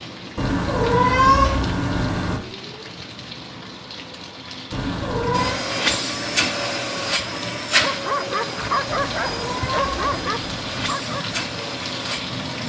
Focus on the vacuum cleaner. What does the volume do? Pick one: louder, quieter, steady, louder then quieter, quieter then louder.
quieter.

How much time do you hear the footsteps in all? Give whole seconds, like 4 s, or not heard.
not heard.